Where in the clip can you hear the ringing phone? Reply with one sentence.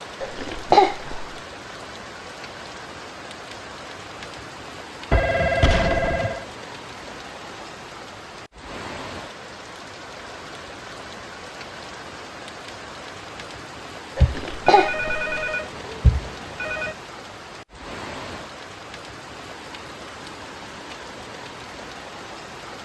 You can hear the ringing phone from 5.1 to 6.5 s and from 14.2 to 16.9 s.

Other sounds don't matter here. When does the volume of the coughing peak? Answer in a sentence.
The loudest moment of the coughing is at 1 second.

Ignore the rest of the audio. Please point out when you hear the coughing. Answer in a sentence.
The coughing can be heard from 0.2 to 1.4 s and from 14.2 to 15.3 s.